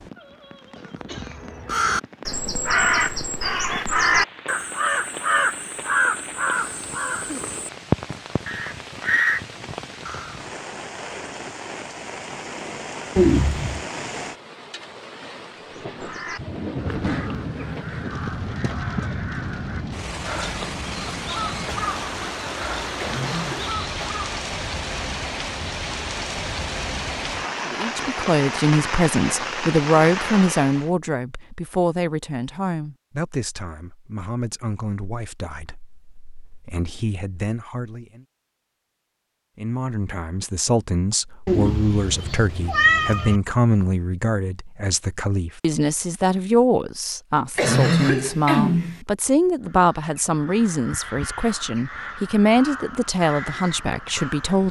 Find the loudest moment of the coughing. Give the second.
48 s.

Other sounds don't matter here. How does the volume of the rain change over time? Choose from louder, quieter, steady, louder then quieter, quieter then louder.
louder.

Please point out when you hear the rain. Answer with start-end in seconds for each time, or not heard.
0.0-30.9.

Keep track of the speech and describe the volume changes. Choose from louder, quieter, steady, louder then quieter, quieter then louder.
quieter then louder.